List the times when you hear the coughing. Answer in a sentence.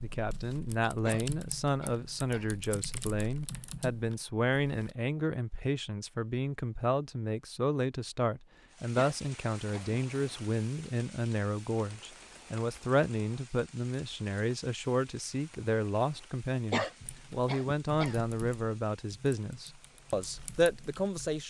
You can hear the coughing from 0.8 to 2.5 s, from 8.8 to 10.0 s and from 16.6 to 18.2 s.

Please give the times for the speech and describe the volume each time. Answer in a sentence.
The speech can be heard from 0.0 to 21.4 s, at a steady volume.